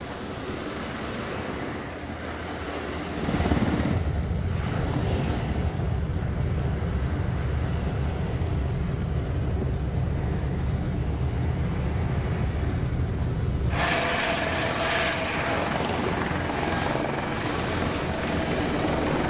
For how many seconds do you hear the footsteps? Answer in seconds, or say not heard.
not heard.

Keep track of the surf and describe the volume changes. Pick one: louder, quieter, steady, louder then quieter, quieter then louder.
quieter then louder.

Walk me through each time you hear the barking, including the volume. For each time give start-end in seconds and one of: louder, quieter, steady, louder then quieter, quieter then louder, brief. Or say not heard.
not heard.